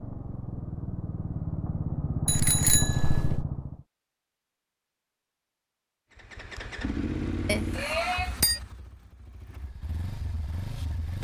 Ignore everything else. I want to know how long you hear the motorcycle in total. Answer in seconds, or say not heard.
9 s.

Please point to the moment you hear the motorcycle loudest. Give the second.
3 s.